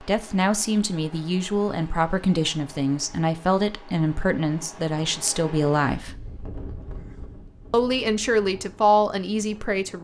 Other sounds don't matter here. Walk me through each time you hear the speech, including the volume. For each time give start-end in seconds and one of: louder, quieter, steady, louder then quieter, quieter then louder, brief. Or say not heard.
0.0-6.2 steady
7.7-10.0 brief.